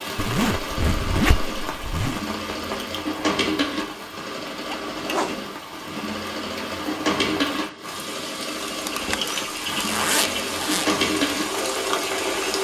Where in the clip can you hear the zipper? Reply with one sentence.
The zipper can be heard from 0.1 to 2.2 s, from 4.8 to 5.5 s and from 8.8 to 10.9 s.